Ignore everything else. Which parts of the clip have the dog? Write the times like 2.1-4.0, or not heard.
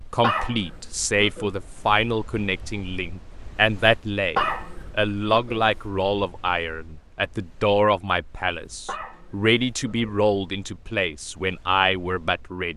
0.2-1.6, 4.3-5.7, 8.8-10.2.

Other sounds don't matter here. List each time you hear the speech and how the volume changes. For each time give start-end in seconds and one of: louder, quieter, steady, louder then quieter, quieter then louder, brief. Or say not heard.
0.1-12.7 steady.